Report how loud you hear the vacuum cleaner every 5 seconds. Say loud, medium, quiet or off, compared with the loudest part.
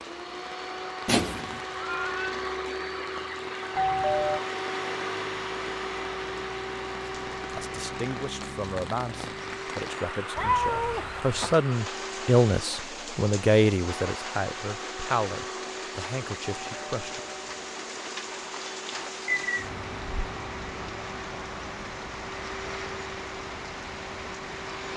loud, loud, medium, medium, medium.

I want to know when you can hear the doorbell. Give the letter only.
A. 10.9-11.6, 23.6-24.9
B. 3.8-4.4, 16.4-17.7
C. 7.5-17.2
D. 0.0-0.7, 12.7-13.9
B.